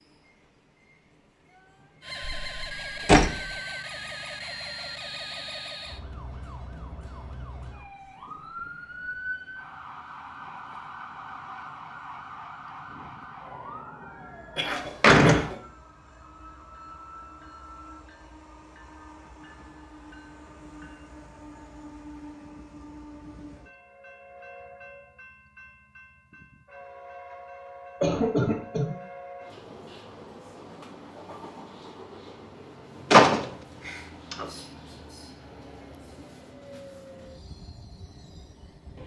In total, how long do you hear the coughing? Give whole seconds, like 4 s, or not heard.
2 s.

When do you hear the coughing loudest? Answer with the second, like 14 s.
28 s.